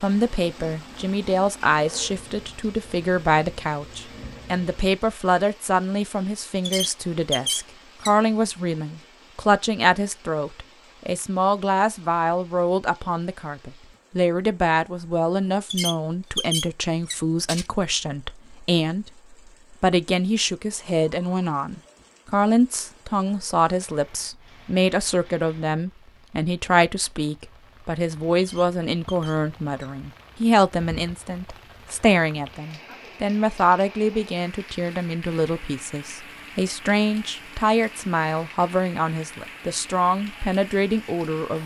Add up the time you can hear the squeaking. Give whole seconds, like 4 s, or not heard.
5 s.